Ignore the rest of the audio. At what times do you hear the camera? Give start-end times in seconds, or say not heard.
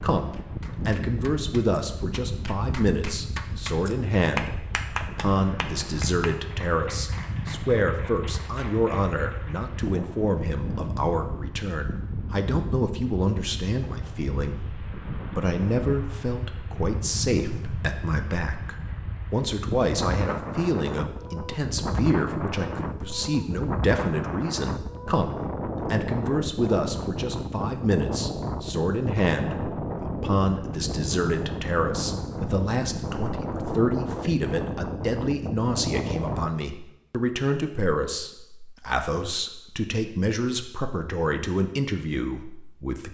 not heard.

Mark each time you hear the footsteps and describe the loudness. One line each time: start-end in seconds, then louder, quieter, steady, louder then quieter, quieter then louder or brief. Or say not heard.
not heard.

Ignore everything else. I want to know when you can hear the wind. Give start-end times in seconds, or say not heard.
0.0-36.5.